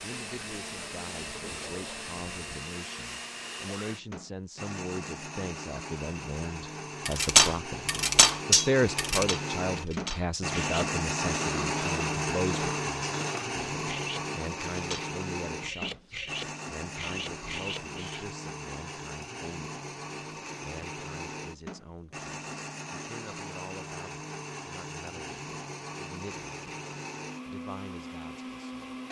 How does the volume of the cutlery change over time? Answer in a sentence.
The loudness of the cutlery goes down.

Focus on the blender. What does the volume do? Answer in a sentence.
The volume of the blender goes up, then down.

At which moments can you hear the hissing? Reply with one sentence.
You can hear the hissing from 0.0 to 2.5 s.